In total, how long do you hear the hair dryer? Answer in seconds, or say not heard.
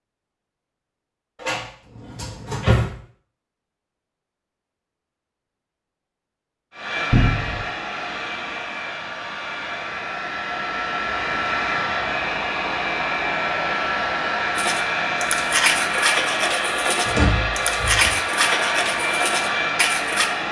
14 s.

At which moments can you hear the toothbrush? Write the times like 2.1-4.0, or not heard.
14.6-20.3.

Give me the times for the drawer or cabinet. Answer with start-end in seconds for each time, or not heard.
1.4-2.9, 7.1-7.7, 17.1-18.1.